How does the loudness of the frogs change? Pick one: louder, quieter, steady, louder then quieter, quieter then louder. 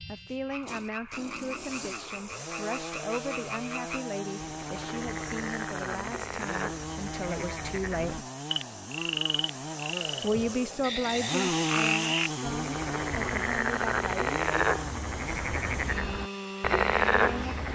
louder.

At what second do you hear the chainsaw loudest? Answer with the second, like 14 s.
12 s.